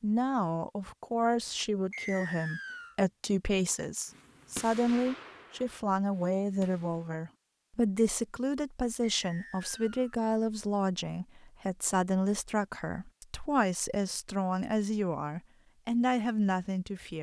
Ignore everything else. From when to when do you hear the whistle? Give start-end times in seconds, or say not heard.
1.9-3.0, 9.1-10.0.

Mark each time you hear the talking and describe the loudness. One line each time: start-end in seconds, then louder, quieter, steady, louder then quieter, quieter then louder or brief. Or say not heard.
0.0-17.1 steady.